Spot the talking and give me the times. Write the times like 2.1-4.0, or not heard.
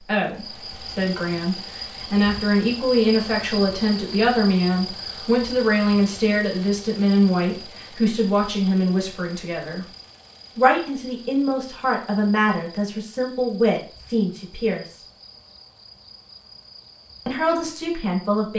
0.0-9.8, 10.6-15.0, 17.2-18.5.